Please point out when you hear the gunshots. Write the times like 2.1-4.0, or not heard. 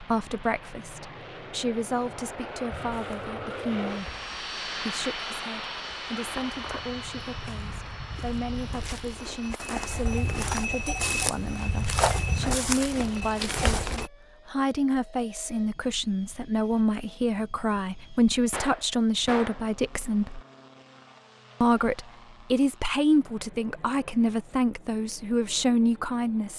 18.5-19.6.